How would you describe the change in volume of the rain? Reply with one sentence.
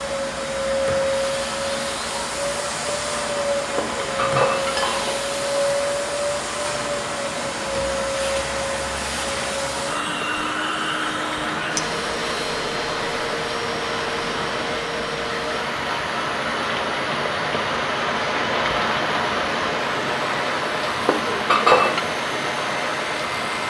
The volume of the rain goes up.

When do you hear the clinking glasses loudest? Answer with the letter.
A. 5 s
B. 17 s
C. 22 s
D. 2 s
C.